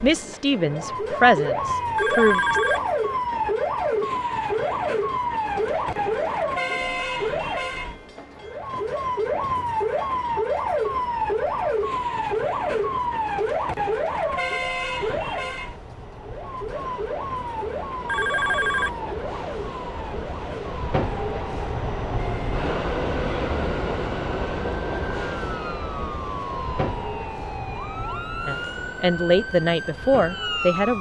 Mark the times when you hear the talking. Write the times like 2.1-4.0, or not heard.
0.0-2.6, 28.4-30.9.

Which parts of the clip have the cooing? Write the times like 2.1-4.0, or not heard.
not heard.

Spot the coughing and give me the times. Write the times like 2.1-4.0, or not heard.
not heard.